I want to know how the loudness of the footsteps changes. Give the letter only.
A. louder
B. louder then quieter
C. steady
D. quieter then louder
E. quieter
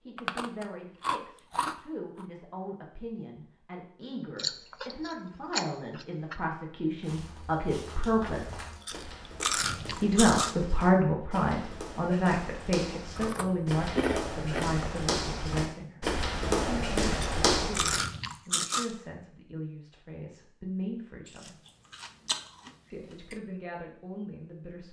A.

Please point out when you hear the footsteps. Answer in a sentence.
The footsteps can be heard from 7.0 to 18.0 s.